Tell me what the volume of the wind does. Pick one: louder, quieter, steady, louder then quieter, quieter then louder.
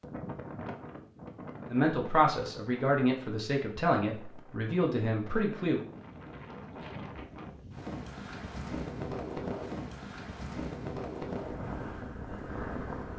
quieter then louder.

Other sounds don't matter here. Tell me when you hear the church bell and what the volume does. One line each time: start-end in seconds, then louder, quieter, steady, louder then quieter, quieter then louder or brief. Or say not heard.
not heard.